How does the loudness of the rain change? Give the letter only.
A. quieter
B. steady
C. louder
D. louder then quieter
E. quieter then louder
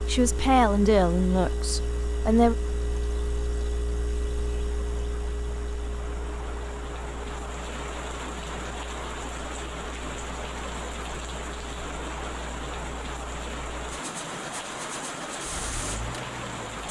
C.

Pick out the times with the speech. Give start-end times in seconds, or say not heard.
0.1-2.5.